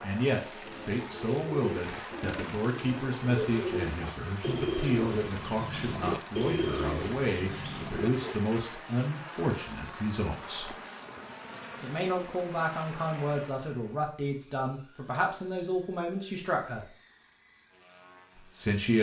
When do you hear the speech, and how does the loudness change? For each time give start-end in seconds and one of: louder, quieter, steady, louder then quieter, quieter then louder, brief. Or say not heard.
0.0-10.8 steady
11.8-16.9 steady
18.4-18.9 brief.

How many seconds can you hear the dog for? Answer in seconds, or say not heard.
not heard.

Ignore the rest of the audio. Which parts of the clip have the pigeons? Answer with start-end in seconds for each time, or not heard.
0.7-8.3.